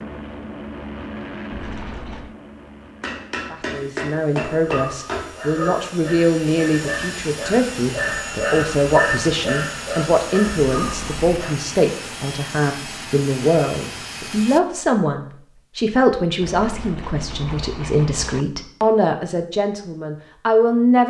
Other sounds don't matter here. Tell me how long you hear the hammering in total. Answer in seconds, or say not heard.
2 s.